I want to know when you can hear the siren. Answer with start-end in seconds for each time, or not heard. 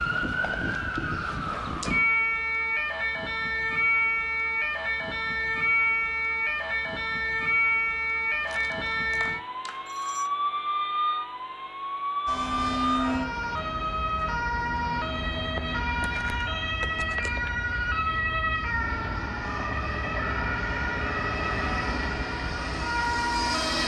0.0-23.8.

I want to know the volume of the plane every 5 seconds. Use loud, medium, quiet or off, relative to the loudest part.
off, off, loud, medium, loud.